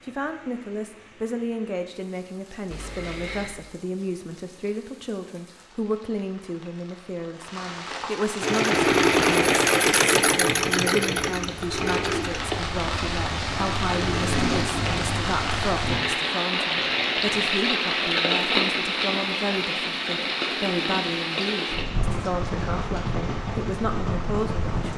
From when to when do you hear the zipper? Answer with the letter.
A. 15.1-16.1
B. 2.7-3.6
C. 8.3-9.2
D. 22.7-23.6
B.